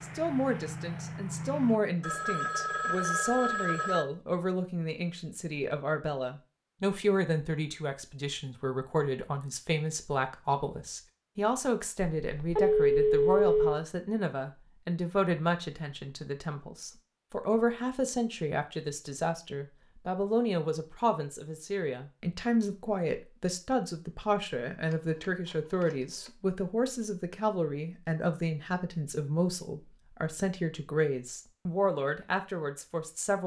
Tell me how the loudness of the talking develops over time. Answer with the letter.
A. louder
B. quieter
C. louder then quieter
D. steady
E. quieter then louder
D.